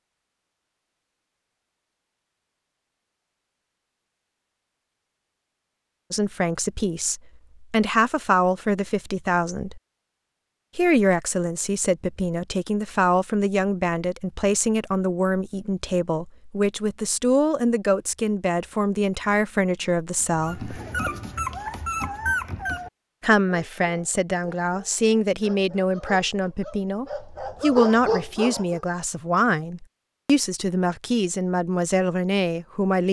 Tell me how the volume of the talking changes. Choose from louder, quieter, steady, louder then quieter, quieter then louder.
steady.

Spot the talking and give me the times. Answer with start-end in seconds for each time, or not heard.
6.1-9.8, 10.8-20.8, 23.2-33.0.